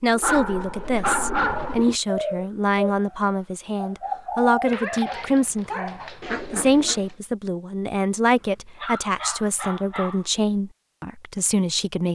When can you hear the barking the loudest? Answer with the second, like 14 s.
1 s.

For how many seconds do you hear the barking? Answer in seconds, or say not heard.
5 s.